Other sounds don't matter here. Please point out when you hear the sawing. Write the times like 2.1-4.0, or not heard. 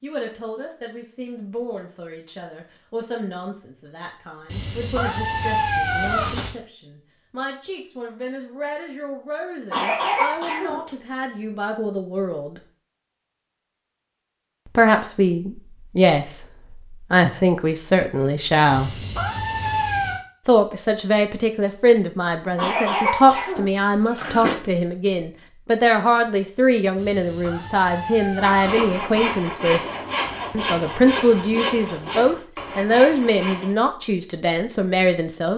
28.4-33.8.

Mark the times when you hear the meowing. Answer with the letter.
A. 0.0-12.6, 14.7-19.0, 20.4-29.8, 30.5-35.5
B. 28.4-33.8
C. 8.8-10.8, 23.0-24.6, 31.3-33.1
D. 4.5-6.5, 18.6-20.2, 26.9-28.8
D.